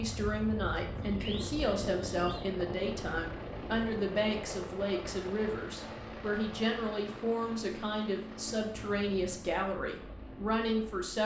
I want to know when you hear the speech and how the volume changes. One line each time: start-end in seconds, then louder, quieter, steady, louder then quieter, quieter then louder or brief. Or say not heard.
0.0-11.2 steady.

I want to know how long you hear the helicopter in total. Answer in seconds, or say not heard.
11 s.